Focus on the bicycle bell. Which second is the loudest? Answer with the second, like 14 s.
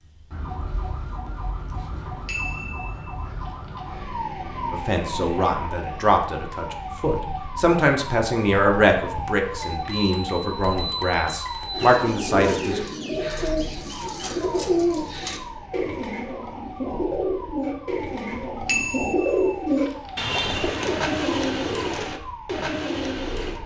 19 s.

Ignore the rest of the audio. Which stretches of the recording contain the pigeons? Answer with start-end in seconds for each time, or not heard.
11.7-23.6.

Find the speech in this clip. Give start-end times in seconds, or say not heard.
4.7-12.8.